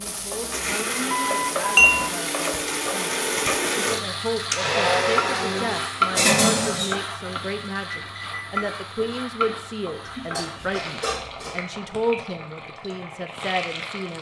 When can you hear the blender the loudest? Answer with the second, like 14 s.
5 s.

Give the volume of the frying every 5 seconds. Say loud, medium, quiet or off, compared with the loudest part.
loud, loud, medium.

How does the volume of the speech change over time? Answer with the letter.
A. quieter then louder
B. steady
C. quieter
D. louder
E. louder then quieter
D.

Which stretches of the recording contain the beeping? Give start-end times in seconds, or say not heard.
1.1-1.9, 7.9-8.7.